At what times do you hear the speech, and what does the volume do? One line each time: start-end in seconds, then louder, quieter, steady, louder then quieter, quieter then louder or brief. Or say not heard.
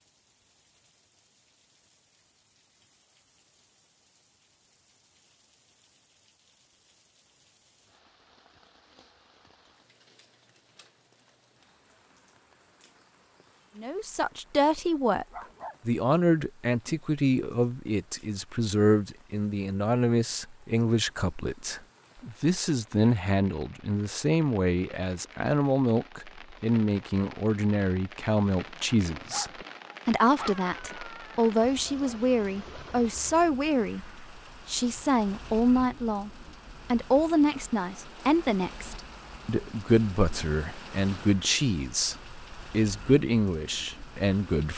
13.8-15.2 brief
15.8-36.3 steady
36.9-44.7 steady.